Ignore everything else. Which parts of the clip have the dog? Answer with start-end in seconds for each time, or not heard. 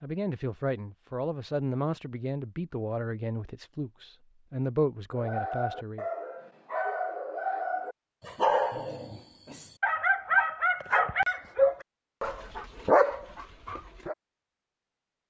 5.1-14.2.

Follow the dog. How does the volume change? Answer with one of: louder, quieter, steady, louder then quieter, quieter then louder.
louder.